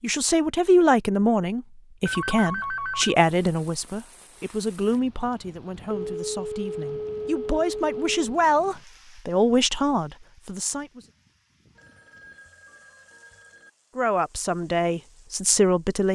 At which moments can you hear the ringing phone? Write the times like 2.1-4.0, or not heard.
2.0-3.2, 5.9-8.2, 11.8-13.7.